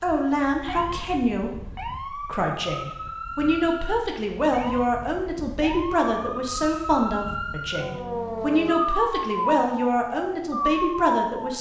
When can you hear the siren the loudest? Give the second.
9 s.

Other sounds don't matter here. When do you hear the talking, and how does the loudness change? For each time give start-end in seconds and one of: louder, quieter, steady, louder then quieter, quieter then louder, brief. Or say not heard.
0.0-11.5 steady.